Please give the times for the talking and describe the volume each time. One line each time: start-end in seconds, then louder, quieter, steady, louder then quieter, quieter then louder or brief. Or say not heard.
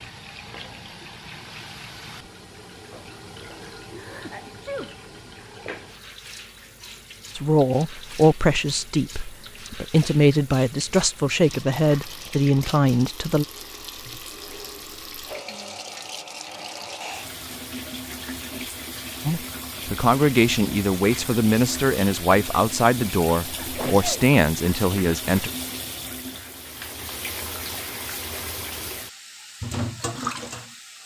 7.3-13.4 quieter then louder
19.2-25.5 steady.